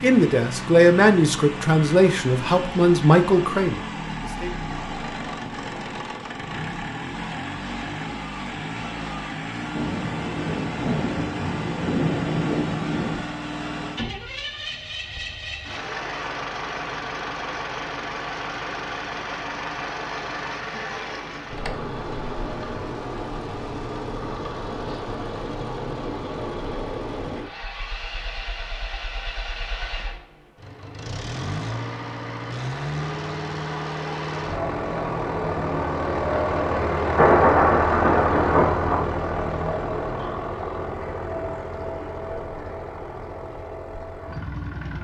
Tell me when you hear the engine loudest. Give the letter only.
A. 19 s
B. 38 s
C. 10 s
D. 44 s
B.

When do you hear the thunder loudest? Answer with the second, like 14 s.
37 s.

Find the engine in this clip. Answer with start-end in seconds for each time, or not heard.
0.0-44.9.